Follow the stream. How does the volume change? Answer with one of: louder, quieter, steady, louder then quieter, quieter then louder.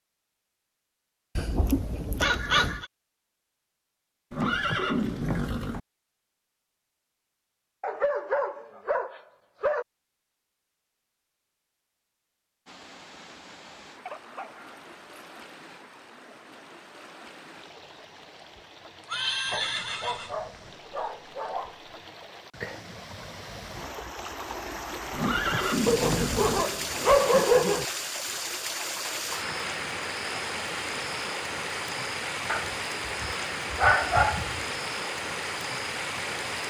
louder.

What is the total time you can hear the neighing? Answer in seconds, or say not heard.
4 s.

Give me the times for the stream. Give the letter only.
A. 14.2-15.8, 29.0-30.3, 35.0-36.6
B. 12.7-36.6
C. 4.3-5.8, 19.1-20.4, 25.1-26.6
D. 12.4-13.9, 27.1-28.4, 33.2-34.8
B.